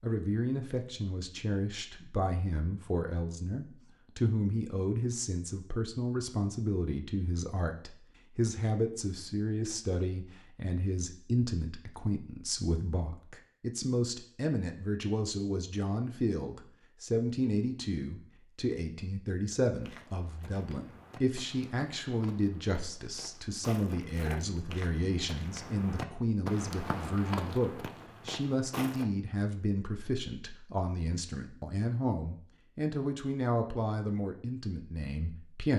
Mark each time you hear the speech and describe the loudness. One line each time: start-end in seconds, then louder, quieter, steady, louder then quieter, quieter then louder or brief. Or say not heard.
0.0-35.7 steady.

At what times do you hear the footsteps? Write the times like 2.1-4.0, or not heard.
19.8-29.1.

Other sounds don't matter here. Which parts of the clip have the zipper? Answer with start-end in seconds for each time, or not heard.
not heard.